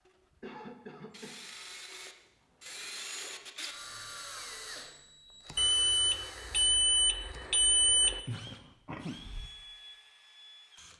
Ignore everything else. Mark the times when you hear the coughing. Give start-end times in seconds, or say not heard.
0.4-1.4, 8.2-9.5.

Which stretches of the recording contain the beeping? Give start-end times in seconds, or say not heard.
5.5-8.2.